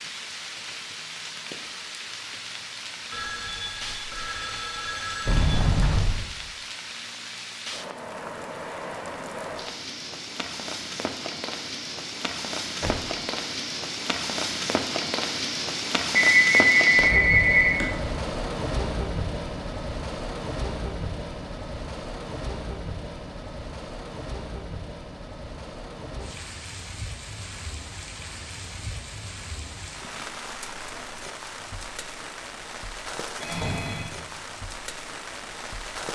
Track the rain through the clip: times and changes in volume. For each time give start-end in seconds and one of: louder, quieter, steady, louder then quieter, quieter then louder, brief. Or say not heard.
0.0-36.1 louder then quieter.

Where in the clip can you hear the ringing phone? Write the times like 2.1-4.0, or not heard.
3.1-5.6, 16.1-17.9, 33.4-34.1.